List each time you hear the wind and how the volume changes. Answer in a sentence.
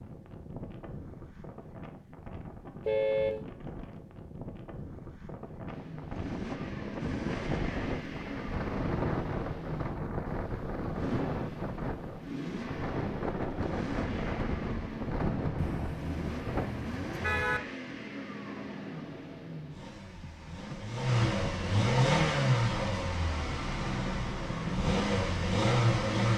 The wind can be heard from 0.0 to 16.7 s, getting louder.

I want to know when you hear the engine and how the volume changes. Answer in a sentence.
The engine can be heard from 5.7 to 26.3 s, getting louder.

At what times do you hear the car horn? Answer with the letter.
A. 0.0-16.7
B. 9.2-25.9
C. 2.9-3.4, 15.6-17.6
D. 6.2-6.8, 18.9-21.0
C.